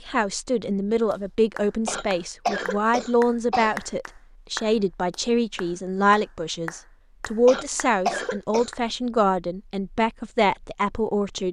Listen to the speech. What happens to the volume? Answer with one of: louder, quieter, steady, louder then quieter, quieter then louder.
steady.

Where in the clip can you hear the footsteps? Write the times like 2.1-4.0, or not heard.
not heard.